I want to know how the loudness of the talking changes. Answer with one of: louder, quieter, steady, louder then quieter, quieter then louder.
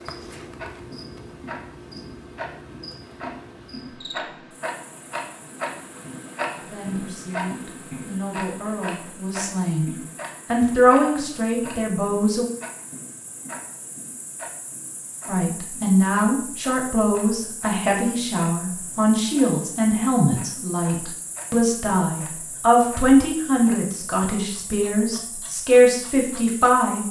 louder.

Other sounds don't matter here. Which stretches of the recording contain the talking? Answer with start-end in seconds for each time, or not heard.
6.7-12.4, 15.2-27.0.